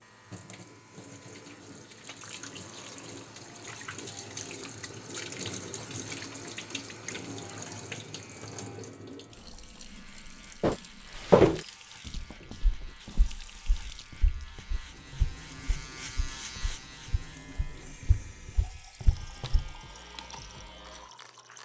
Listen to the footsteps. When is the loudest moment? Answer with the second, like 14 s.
11 s.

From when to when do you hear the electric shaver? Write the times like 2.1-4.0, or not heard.
0.0-21.6.